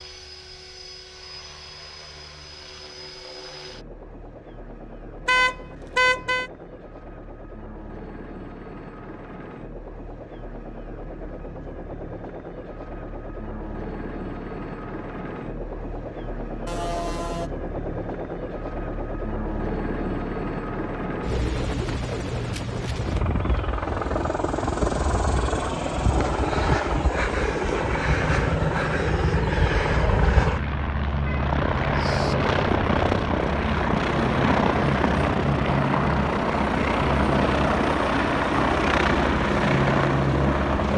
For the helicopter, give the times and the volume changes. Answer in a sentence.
You can hear the helicopter from 0.0 to 40.9 s, getting louder.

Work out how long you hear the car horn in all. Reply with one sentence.
The car horn can be heard for 3 seconds in total.